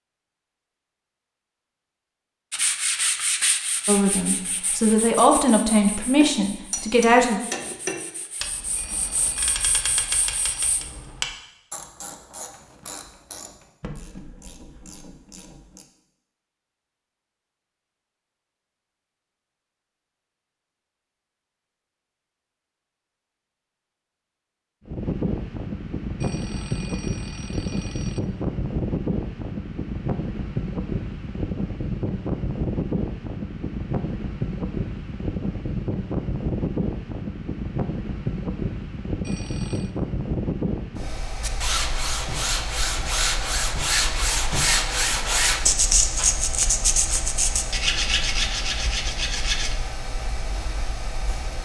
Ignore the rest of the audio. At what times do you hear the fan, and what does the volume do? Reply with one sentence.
The fan can be heard from 24.9 to 51.6 s, getting quieter.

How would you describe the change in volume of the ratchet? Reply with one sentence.
The loudness of the ratchet goes down.